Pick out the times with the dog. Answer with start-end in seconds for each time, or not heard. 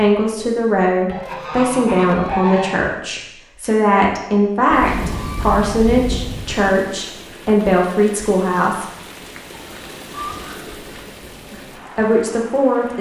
not heard.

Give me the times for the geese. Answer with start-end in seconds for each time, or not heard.
1.1-2.8, 4.7-6.7, 9.6-11.2.